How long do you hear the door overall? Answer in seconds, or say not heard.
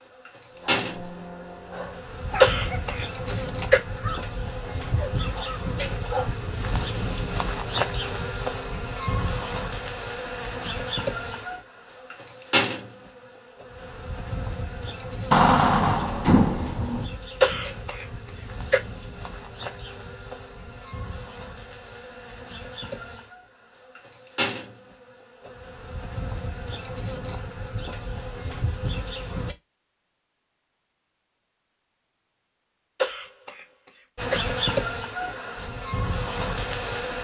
2 s.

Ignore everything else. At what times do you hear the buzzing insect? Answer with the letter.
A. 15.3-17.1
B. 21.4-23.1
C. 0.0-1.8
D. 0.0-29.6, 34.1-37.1
D.